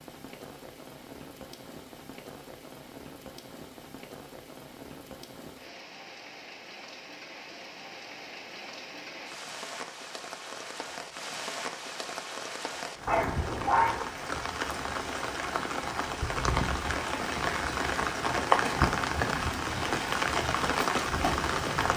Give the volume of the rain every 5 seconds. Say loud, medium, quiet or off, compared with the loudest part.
quiet, quiet, medium, loud, loud.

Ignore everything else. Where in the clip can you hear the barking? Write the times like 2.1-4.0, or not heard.
13.1-14.1.